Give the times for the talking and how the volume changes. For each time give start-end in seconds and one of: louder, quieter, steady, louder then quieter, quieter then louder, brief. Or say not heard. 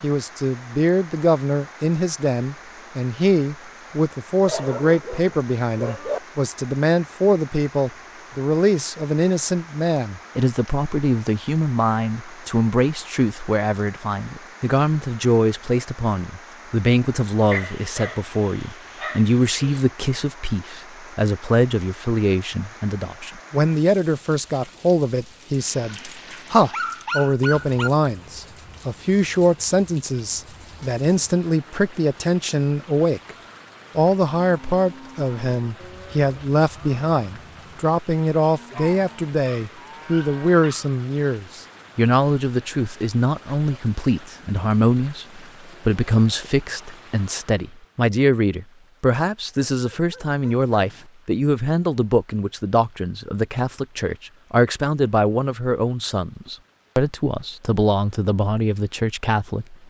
0.0-33.4 steady
34.0-59.8 steady.